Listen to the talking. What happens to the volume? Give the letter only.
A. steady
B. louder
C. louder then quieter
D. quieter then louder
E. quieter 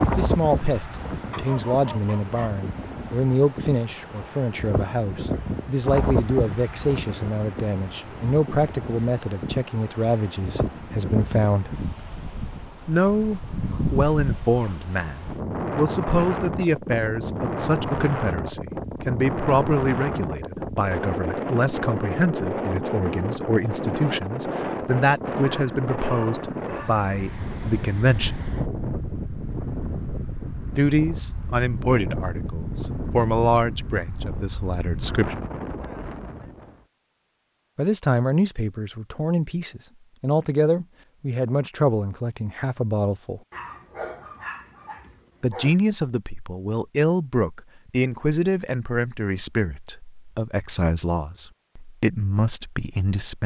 A.